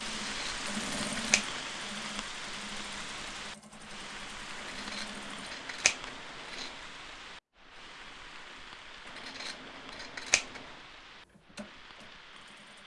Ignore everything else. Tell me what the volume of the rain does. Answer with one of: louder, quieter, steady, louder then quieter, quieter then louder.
quieter.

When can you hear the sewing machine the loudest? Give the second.
1 s.